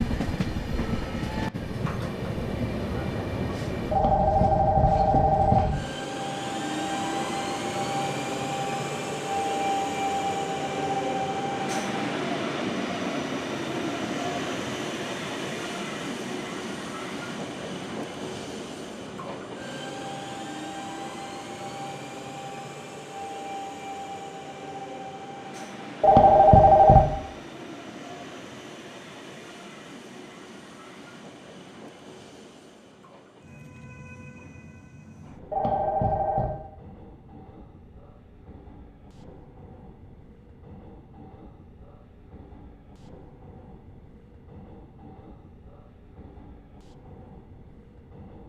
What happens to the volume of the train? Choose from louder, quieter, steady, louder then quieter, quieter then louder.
quieter.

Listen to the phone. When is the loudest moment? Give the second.
27 s.